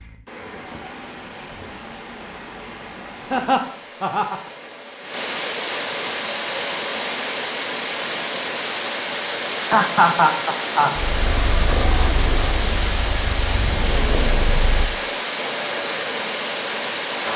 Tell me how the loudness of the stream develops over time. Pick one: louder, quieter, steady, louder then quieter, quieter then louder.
louder.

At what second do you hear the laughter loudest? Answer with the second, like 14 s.
10 s.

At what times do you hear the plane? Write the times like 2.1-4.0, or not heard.
10.9-14.9.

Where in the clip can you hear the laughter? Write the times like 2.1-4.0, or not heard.
3.3-4.5, 9.7-10.9.